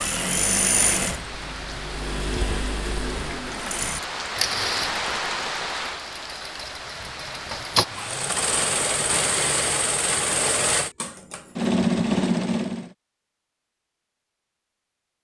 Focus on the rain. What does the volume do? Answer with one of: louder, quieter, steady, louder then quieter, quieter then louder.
louder then quieter.